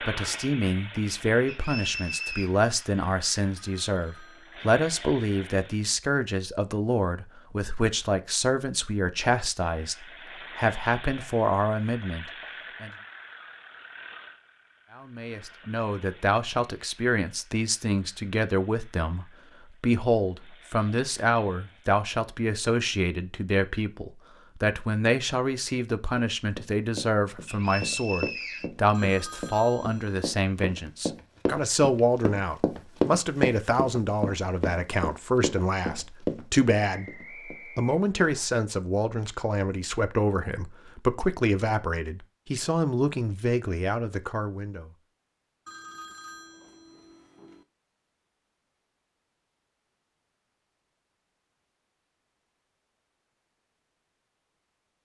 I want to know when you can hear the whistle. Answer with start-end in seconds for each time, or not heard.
1.4-2.5, 27.4-28.7, 36.9-38.5.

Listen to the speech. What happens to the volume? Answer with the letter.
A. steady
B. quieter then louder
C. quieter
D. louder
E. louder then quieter
A.